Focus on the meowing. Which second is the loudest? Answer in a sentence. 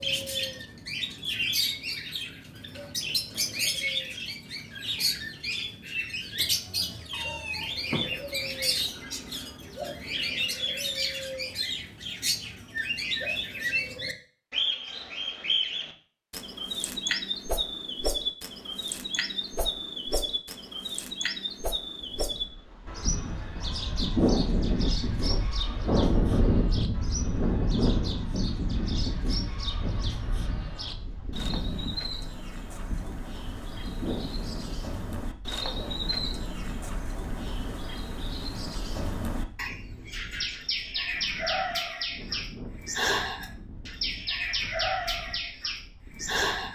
The volume of the meowing peaks at 8 seconds.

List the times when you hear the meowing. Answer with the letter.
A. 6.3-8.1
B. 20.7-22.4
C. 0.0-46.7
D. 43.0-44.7
A.